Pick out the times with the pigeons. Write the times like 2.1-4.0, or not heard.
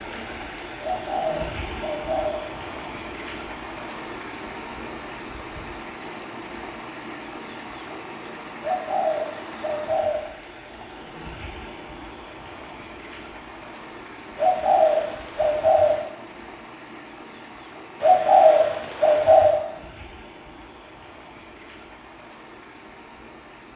0.8-2.4, 8.6-10.2, 14.3-16.0, 18.0-19.6.